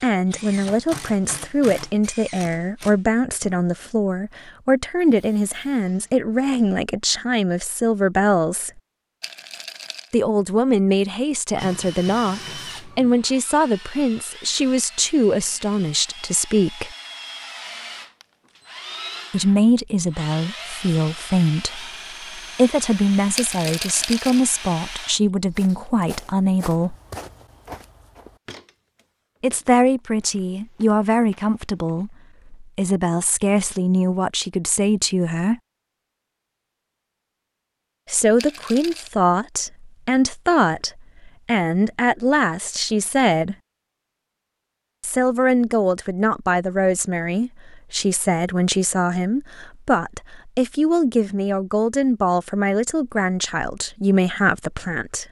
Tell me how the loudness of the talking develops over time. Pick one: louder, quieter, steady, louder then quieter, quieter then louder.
steady.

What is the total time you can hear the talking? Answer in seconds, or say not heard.
45 s.